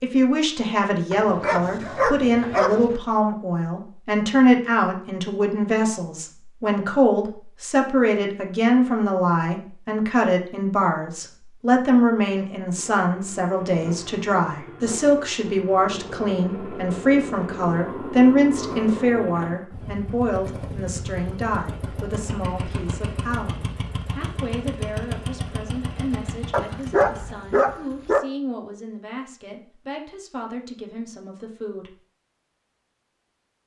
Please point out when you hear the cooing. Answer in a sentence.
The cooing can't be heard in this clip.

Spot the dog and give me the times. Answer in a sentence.
The dog can be heard from 1.1 to 3.0 s and from 26.5 to 28.2 s.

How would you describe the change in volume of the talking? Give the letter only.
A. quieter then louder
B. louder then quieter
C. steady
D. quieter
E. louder
D.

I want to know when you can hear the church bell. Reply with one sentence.
You can't hear the church bell here.